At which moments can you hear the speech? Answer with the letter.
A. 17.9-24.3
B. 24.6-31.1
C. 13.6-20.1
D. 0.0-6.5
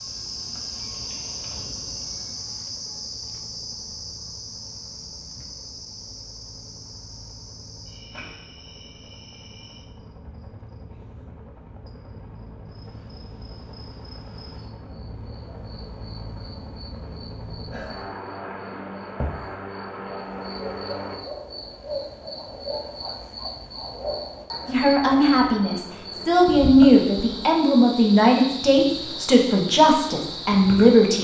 B.